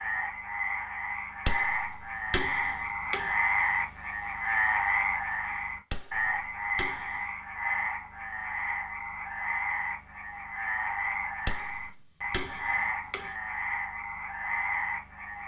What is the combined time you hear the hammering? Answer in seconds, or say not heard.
5 s.